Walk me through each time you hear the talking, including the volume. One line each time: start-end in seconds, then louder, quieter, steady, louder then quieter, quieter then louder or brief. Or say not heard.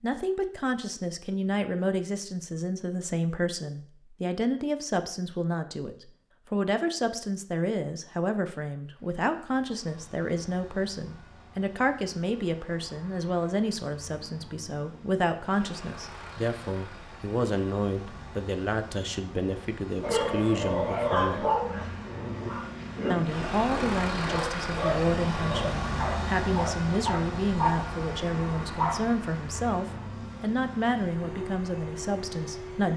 0.0-21.4 steady
23.1-32.9 steady.